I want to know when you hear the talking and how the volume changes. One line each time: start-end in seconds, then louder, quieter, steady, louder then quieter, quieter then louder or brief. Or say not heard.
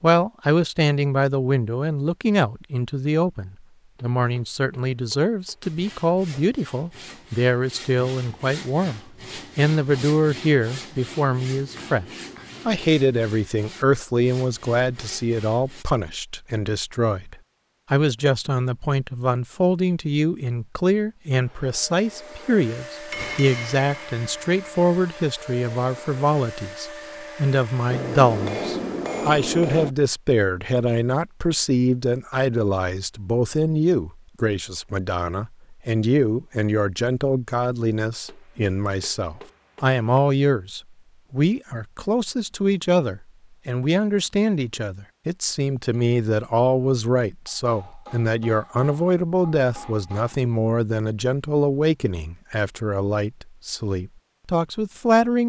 0.0-55.4 steady.